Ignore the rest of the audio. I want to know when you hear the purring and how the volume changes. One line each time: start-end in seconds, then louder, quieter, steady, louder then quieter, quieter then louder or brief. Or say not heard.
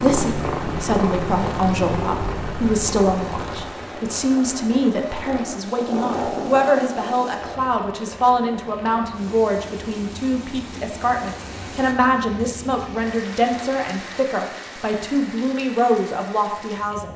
0.0-7.6 quieter then louder.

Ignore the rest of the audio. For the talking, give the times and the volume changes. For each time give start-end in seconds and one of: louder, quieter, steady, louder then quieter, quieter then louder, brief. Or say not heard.
0.0-17.1 steady.